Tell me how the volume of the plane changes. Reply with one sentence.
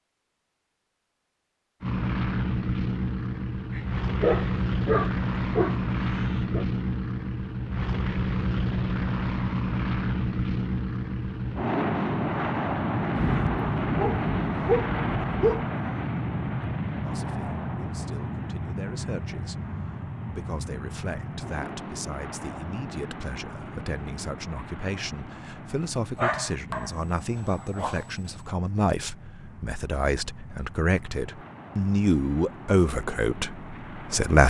The loudness of the plane goes down.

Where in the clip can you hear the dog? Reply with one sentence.
The dog can be heard from 3.7 to 6.7 s, from 13.2 to 15.7 s and from 26.1 to 28.5 s.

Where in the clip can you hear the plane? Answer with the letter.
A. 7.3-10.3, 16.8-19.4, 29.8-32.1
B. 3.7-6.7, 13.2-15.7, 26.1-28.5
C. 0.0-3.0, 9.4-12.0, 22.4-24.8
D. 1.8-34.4
D.